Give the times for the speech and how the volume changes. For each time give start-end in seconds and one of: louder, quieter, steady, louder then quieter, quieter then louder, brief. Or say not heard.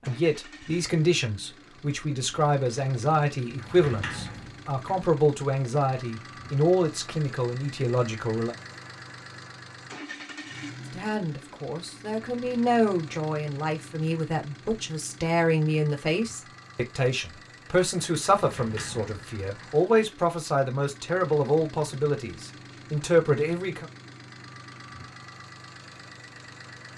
0.0-8.6 steady
10.9-23.9 steady.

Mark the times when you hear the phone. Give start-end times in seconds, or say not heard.
not heard.